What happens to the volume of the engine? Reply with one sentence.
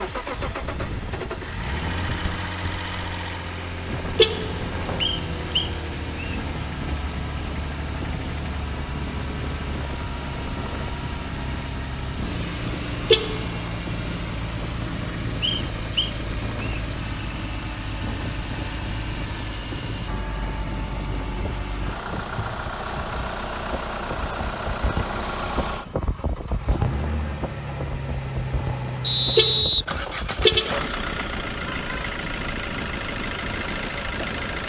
The loudness of the engine stays about the same.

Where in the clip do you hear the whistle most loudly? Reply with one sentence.
The volume of the whistle peaks at 29 seconds.